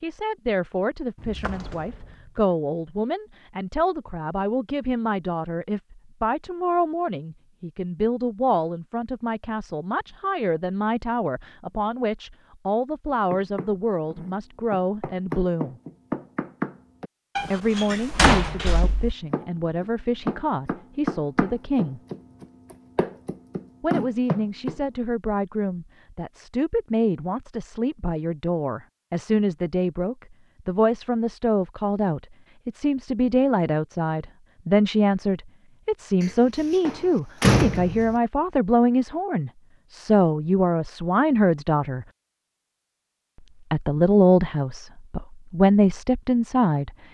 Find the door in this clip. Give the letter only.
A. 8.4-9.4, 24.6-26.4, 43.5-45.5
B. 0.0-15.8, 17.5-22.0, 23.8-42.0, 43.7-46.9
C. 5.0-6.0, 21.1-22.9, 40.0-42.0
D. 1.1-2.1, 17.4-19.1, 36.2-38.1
D.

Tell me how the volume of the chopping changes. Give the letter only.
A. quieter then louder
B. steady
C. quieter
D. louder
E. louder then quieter
D.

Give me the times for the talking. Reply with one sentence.
The talking can be heard from 0.0 to 15.8 s, from 17.5 to 22.0 s, from 23.8 to 42.0 s and from 43.7 to 46.9 s.